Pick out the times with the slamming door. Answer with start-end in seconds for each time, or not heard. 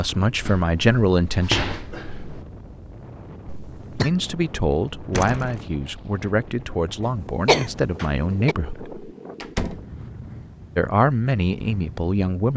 0.5-2.5, 5.1-5.7, 9.4-9.9.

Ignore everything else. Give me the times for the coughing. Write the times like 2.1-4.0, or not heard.
3.5-4.1, 7.0-8.6.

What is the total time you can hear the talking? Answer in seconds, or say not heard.
8 s.